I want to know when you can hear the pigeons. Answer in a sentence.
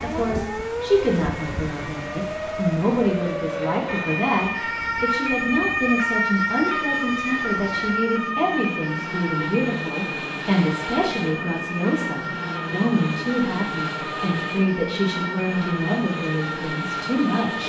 The pigeons can't be heard in this clip.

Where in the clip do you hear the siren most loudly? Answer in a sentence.
The volume of the siren peaks at 6 seconds.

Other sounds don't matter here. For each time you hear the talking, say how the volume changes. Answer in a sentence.
The talking can be heard from 0.0 to 17.6 s, at a steady volume.